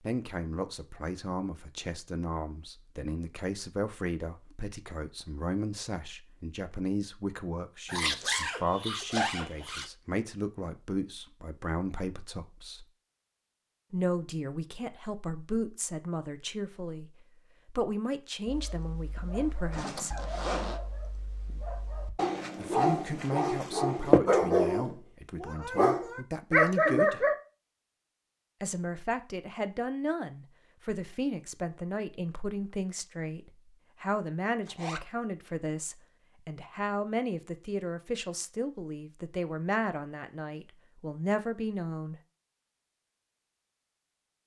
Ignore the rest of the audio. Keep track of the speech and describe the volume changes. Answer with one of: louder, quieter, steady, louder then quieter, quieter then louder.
steady.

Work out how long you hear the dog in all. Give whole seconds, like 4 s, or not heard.
9 s.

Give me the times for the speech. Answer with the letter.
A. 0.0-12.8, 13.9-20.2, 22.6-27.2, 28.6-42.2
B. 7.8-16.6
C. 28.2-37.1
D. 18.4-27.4
A.